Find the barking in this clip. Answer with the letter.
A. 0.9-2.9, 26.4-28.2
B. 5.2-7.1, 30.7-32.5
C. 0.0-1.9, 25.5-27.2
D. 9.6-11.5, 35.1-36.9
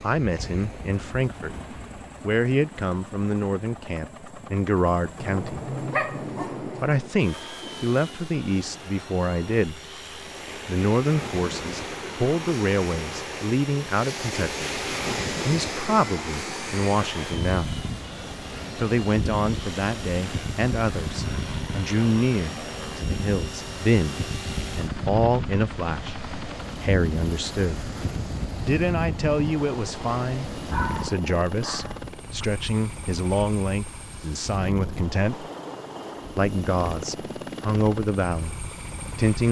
B.